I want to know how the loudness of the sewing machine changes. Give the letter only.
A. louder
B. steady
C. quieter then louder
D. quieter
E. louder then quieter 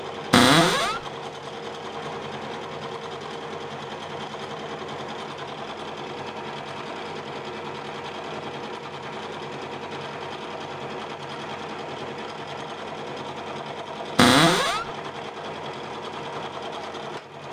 B.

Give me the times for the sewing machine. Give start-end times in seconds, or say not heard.
0.0-17.4.